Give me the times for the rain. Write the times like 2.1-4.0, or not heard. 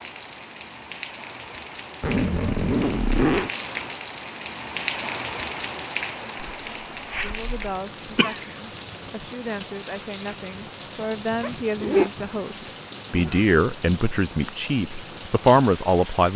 0.0-16.3.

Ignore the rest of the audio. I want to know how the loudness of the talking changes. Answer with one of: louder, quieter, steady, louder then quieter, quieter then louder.
louder.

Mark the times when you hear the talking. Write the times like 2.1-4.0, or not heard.
7.2-16.3.